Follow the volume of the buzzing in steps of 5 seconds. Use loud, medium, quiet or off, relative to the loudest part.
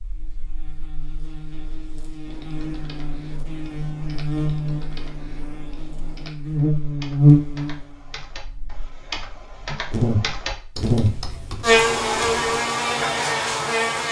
medium, loud, loud.